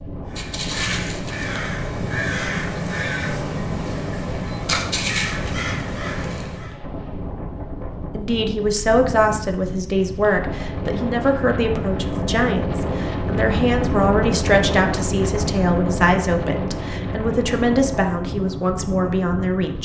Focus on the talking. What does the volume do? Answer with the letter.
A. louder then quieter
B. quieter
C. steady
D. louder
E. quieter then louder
C.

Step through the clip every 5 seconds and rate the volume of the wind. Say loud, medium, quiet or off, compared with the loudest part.
medium, medium, loud, loud.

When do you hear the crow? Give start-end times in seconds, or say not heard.
0.3-6.8.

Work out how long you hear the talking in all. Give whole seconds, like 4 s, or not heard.
12 s.